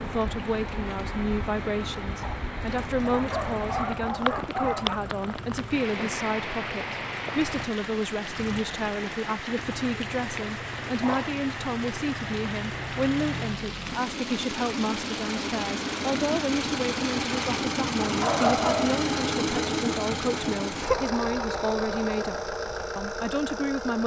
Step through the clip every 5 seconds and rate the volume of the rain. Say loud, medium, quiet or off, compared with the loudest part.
loud, loud, loud, loud, off.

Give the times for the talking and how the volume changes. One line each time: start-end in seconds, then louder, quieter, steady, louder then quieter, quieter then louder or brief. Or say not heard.
0.0-24.0 steady.